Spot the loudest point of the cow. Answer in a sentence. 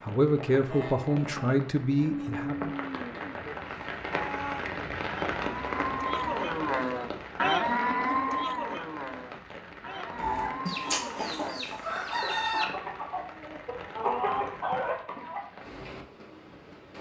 The loudest moment of the cow is at 8 seconds.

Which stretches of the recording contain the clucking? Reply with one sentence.
You can hear the clucking from 10.2 to 15.4 s.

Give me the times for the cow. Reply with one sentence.
The cow can be heard from 0.7 to 11.7 s.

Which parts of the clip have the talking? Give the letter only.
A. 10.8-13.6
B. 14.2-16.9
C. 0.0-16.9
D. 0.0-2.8
D.